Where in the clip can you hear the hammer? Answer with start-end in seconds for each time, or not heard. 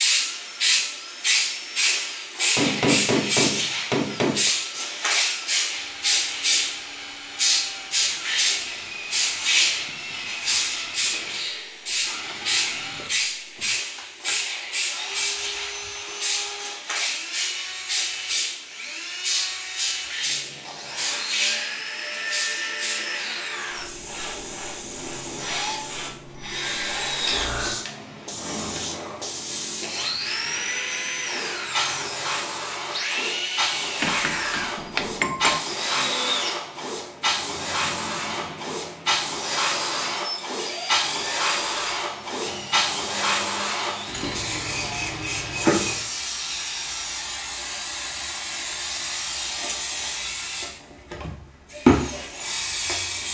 2.5-4.5, 34.0-35.6.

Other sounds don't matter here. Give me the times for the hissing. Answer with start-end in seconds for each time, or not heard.
0.0-53.2.